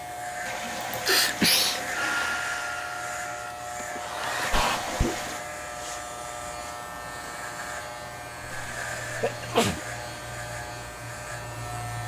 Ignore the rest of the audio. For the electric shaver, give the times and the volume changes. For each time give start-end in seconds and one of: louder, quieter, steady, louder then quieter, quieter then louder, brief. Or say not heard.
0.0-12.0 steady.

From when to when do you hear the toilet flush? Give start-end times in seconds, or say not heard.
0.5-2.5, 4.4-5.5, 8.4-10.3.